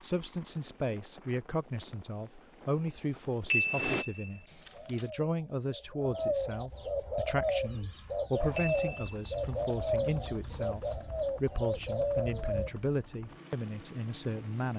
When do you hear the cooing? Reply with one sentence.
You can hear the cooing from 4.7 to 12.8 s.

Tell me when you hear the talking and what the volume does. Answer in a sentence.
The talking can be heard from 0.0 to 14.7 s, at a steady volume.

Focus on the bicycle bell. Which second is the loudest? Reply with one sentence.
The volume of the bicycle bell peaks at 4 seconds.